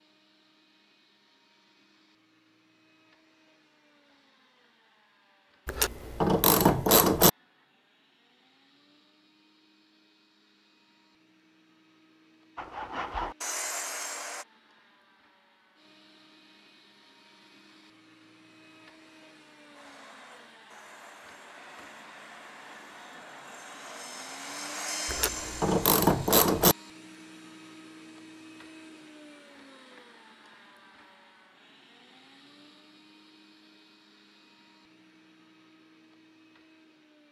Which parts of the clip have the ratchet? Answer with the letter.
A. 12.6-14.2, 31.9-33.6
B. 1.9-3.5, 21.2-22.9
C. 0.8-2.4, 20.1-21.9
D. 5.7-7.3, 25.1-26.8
D.